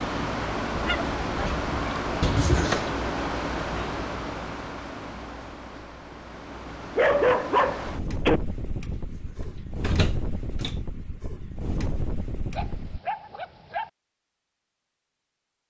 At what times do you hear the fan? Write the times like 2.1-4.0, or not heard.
0.0-13.0.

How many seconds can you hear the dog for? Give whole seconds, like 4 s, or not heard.
4 s.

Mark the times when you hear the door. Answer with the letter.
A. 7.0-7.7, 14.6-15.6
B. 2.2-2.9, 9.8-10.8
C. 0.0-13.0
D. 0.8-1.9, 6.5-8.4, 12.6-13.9
B.